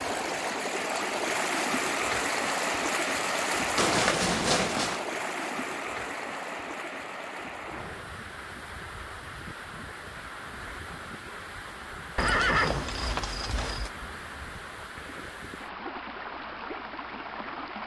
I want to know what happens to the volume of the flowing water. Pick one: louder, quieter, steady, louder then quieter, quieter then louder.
quieter.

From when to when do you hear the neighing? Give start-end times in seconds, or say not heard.
3.8-5.0, 12.2-13.9.